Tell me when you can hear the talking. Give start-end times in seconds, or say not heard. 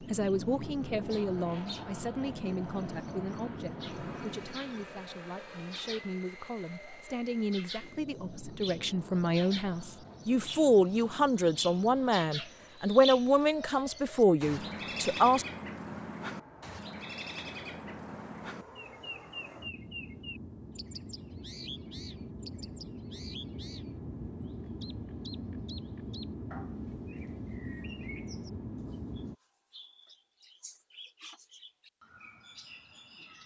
0.0-15.4.